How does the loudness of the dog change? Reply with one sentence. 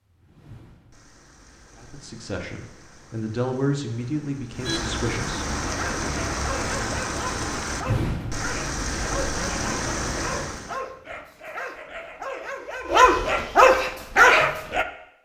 The loudness of the dog goes up.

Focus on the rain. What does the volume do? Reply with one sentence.
The volume of the rain goes up.